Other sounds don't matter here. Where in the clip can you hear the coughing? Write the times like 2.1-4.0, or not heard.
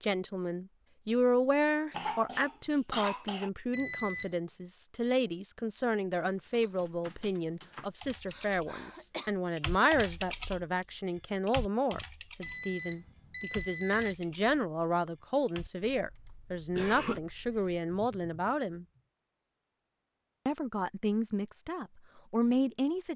1.9-3.5, 8.3-9.3, 16.8-17.2.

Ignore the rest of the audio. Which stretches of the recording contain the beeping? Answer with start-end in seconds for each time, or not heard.
3.7-4.3, 12.4-14.2.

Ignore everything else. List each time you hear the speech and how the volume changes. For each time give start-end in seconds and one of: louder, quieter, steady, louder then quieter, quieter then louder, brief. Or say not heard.
0.0-18.9 steady
20.4-23.1 brief.